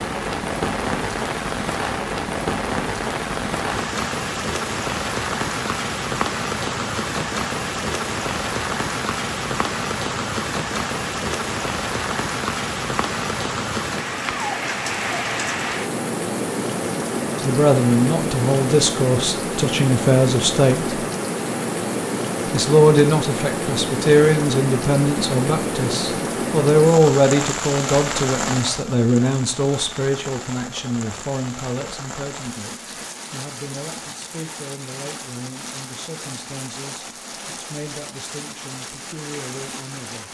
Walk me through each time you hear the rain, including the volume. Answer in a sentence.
You can hear the rain from 0.0 to 40.3 s, getting quieter.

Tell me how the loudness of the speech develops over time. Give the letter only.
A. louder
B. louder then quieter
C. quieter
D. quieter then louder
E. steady
C.